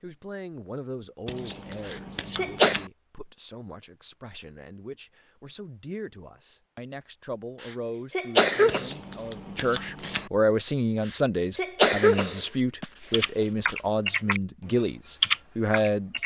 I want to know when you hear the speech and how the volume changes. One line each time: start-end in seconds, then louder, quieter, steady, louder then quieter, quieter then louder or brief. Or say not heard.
0.0-16.1 louder.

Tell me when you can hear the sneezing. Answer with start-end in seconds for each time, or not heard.
1.9-2.8, 7.6-8.9, 11.1-13.2.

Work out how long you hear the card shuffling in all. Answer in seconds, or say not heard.
3 s.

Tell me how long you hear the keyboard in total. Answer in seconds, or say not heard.
3 s.